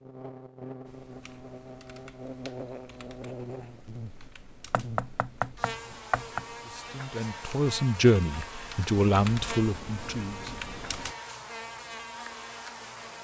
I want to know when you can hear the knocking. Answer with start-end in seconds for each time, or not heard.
4.7-6.5.